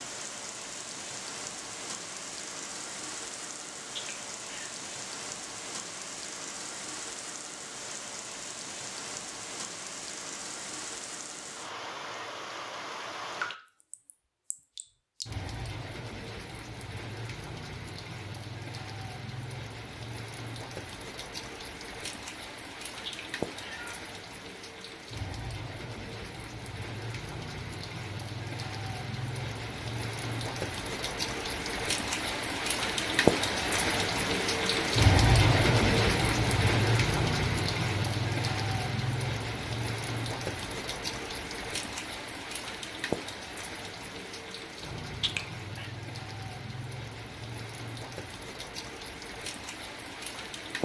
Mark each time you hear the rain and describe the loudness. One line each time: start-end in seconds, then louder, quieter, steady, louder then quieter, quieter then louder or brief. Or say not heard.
0.0-50.8 louder then quieter.